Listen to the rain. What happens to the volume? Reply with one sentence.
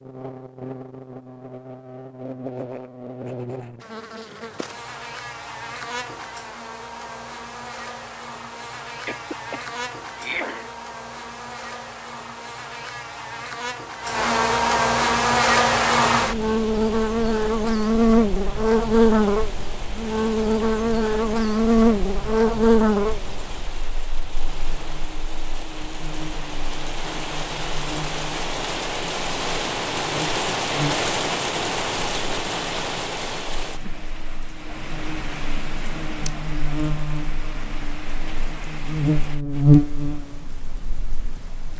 The loudness of the rain goes up, then down.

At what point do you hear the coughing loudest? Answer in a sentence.
The loudest moment of the coughing is at 10 seconds.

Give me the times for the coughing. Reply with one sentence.
The coughing can be heard from 9.1 to 10.7 s.